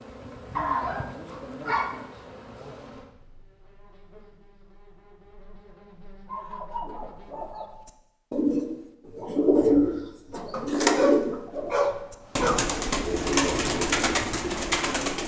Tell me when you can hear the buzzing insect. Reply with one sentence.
You can hear the buzzing insect from 0.0 to 7.8 s.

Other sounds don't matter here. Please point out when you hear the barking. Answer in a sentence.
The barking can be heard from 0.6 to 2.0 s, from 6.2 to 7.8 s and from 10.5 to 12.7 s.